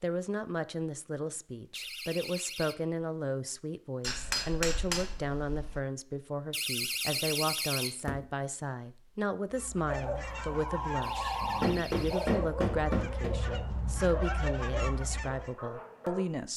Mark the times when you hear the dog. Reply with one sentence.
You can hear the dog from 9.8 to 16.2 s.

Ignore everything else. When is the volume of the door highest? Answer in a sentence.
The loudest moment of the door is at 7 seconds.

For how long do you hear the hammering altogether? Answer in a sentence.
You can hear the hammering for 4 seconds altogether.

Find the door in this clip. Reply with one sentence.
You can hear the door from 1.7 to 2.8 s, from 6.5 to 8.3 s and from 11.0 to 12.4 s.